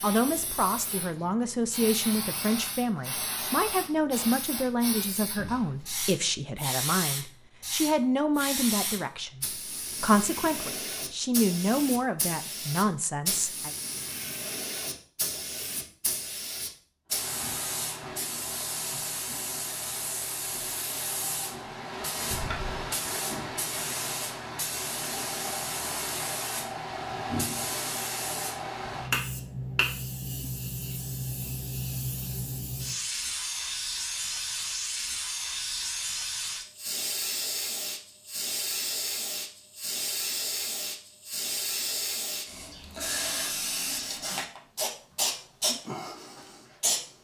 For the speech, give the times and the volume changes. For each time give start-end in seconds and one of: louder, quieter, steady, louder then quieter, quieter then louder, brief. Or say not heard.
0.0-13.8 steady.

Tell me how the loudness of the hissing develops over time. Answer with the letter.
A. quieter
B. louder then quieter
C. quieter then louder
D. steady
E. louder
D.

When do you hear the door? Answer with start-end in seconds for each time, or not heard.
22.3-22.9.